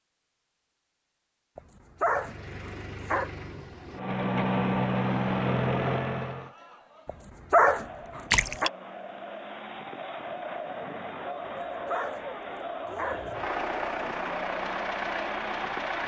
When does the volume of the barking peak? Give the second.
8 s.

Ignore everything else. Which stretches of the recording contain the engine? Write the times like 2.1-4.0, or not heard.
1.9-6.5, 12.9-16.0.